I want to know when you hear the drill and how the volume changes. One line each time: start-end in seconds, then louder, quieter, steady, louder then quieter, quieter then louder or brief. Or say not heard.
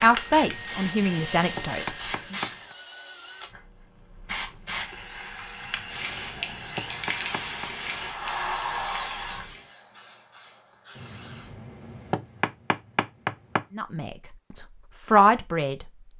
0.0-9.6 quieter then louder.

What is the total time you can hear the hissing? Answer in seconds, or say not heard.
10 s.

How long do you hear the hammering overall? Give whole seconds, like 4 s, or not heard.
7 s.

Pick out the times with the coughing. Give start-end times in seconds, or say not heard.
not heard.